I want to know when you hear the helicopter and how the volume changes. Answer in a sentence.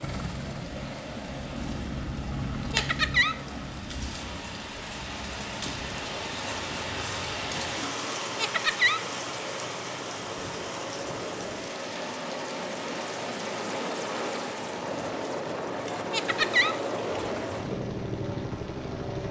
You can hear the helicopter from 0.0 to 19.2 s, getting quieter then louder.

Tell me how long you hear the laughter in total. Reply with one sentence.
The laughter can be heard for 2 seconds in total.